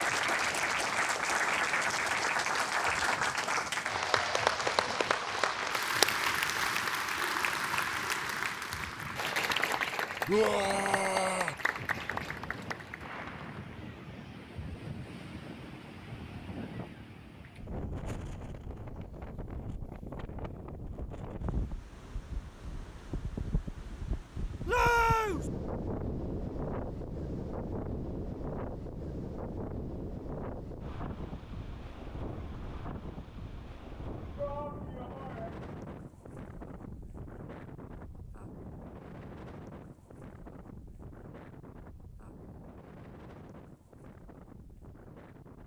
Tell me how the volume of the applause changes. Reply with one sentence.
The loudness of the applause goes down.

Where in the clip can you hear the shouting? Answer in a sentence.
You can hear the shouting from 10.2 to 11.6 s, from 24.6 to 25.4 s and from 34.4 to 35.6 s.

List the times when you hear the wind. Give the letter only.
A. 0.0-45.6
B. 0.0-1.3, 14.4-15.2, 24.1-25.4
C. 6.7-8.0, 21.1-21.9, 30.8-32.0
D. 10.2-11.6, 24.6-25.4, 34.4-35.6
A.